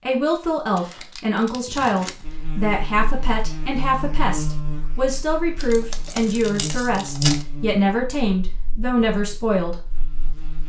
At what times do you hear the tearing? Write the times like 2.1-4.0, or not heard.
0.8-2.2, 5.5-7.5.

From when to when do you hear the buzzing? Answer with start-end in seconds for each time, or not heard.
2.2-10.6.